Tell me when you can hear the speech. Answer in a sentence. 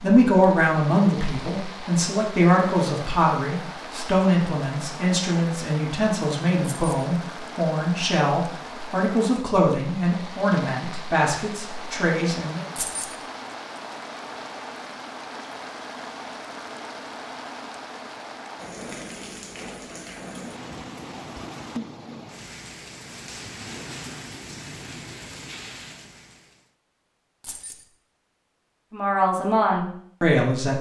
You can hear the speech from 0.0 to 12.6 s and from 28.9 to 30.7 s.